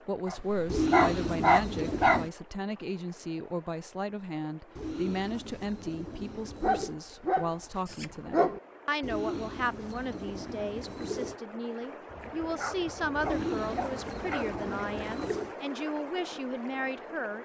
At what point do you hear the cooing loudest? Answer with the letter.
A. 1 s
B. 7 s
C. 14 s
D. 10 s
A.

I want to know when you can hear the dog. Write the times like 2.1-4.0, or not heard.
0.2-2.3, 6.6-8.6, 12.1-14.6.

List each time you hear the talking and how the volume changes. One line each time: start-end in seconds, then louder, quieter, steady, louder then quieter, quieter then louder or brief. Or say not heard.
0.1-17.3 steady.